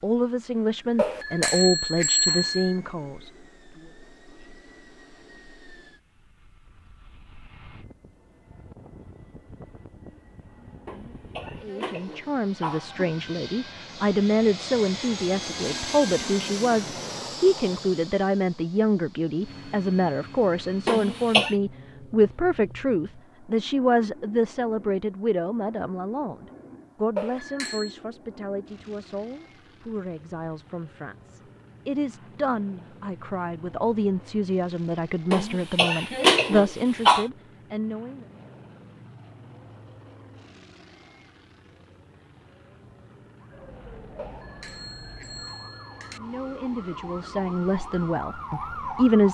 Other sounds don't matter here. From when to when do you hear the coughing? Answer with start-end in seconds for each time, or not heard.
10.8-13.2, 20.9-21.6, 35.3-37.2.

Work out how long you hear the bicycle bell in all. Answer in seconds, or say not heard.
5 s.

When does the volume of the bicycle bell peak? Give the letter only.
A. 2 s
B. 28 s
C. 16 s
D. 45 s
A.